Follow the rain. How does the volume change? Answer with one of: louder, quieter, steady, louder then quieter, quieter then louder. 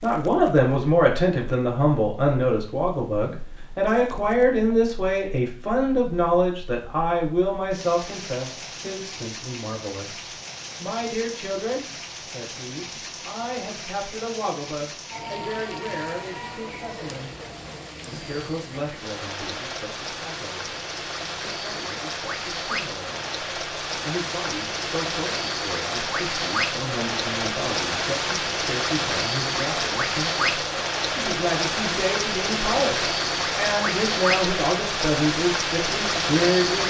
louder.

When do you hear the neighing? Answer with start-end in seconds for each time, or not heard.
not heard.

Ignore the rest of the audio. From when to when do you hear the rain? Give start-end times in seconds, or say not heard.
0.0-36.8.